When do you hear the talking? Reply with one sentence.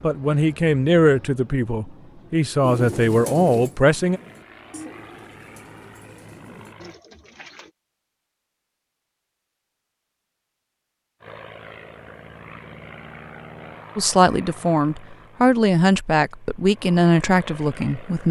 The talking can be heard from 0.0 to 4.2 s and from 13.9 to 18.2 s.